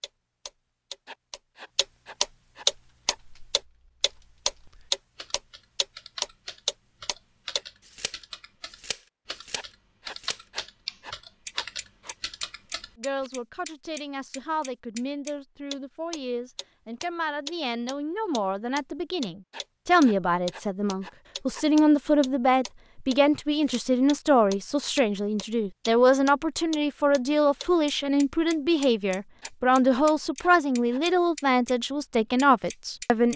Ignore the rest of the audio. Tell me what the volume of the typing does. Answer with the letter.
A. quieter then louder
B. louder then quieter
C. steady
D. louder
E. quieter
D.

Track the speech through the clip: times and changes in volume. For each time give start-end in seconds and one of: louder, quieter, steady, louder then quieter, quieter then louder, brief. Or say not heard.
12.9-33.3 louder.